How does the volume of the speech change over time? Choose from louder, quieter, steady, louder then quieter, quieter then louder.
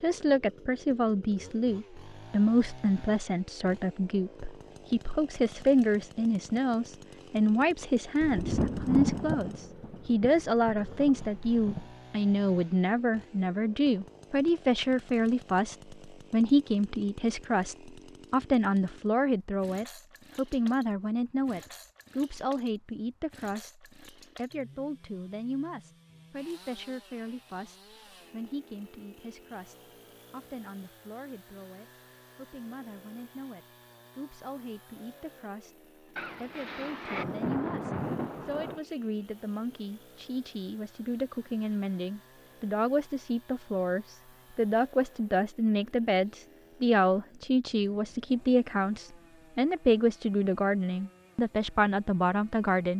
quieter then louder.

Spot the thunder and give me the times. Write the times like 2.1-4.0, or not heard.
8.2-11.9, 36.1-38.8.